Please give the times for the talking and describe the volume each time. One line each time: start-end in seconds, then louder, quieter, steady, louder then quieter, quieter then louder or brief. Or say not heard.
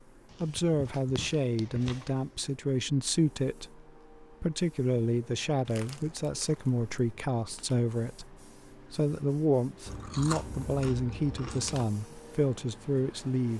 0.4-13.5 steady.